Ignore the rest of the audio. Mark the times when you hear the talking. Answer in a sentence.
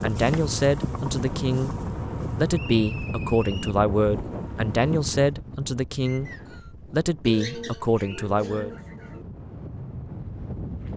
You can hear the talking from 0.0 to 1.8 s, from 2.4 to 6.3 s and from 6.9 to 8.7 s.